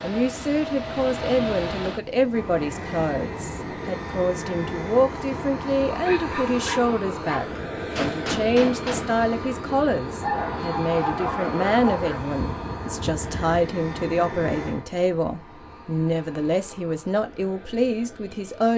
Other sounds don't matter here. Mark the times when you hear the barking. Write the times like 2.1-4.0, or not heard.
5.9-7.5, 10.2-12.2.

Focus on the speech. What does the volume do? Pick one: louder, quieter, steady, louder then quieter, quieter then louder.
steady.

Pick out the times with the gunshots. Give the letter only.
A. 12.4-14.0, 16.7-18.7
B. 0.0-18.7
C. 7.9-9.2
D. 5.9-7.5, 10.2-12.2
C.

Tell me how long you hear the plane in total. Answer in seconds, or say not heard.
19 s.